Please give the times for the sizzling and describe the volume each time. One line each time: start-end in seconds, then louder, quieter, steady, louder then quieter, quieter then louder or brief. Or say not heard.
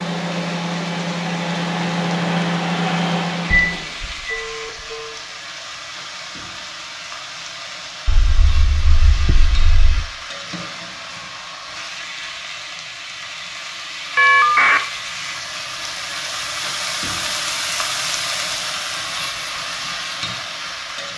0.0-21.1 louder.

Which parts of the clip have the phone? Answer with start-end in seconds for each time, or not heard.
3.5-5.2, 8.1-10.1, 14.2-14.8.